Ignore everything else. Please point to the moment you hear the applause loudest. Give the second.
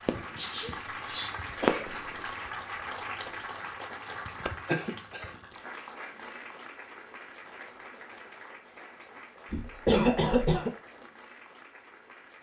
3 s.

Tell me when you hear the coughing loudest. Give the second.
10 s.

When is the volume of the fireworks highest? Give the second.
2 s.